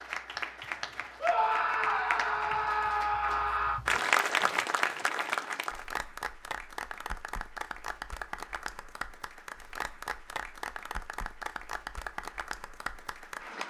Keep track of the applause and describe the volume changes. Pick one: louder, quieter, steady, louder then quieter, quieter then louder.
louder then quieter.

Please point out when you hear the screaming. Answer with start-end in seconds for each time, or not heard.
1.2-3.8.